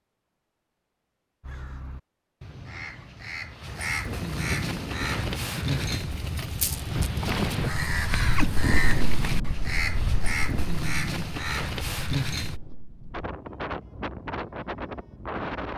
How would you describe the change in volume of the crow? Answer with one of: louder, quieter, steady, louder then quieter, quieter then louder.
louder.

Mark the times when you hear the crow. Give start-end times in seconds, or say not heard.
1.4-12.6.